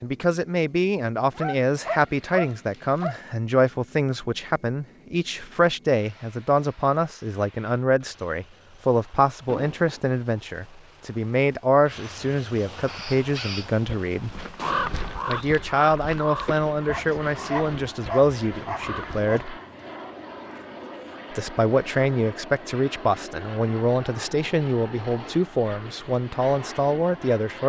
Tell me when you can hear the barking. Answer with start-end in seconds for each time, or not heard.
1.4-3.2, 16.9-19.4.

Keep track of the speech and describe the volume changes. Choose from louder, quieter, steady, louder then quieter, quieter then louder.
steady.